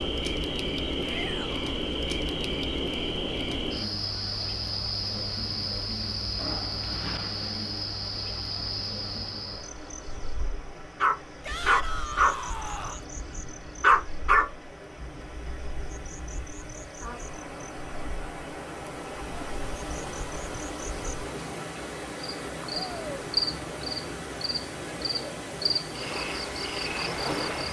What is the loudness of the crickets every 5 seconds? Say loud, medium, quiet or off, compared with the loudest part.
loud, loud, quiet, quiet, loud, loud.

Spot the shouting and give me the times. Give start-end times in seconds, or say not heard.
0.9-1.6, 11.4-13.1, 22.7-23.2.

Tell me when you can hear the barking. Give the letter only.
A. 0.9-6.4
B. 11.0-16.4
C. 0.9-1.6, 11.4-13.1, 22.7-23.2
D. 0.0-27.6
B.